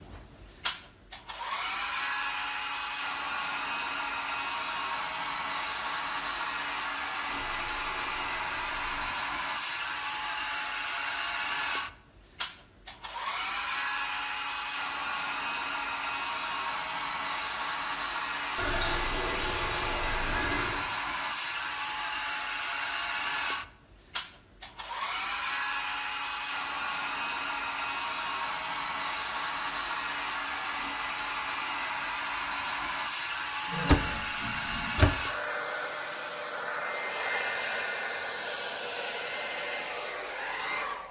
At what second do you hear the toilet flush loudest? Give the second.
19 s.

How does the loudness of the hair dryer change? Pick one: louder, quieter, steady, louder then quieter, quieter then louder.
steady.